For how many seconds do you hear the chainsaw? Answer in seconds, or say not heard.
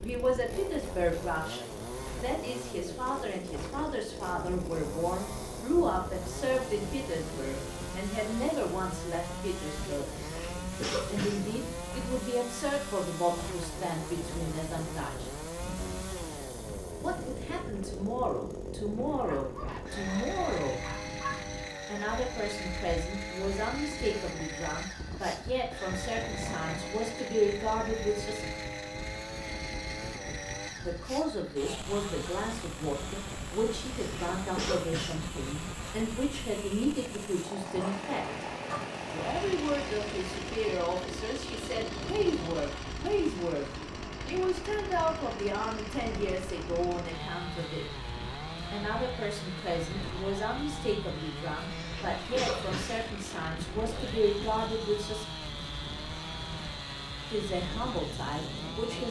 59 s.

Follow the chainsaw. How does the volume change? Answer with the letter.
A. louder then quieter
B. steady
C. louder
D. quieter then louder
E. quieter
B.